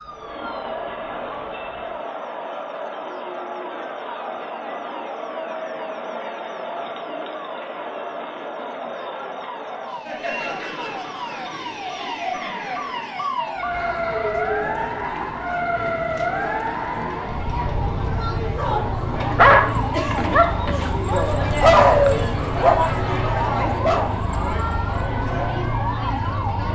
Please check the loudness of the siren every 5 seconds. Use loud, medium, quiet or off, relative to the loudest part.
quiet, quiet, loud, loud, loud, loud.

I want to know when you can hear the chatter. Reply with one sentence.
You can hear the chatter from 0.0 to 26.7 s.